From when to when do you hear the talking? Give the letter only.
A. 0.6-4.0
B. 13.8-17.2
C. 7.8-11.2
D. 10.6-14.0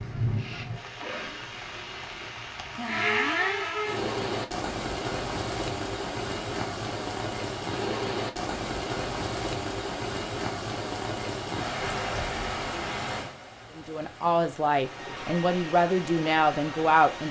B.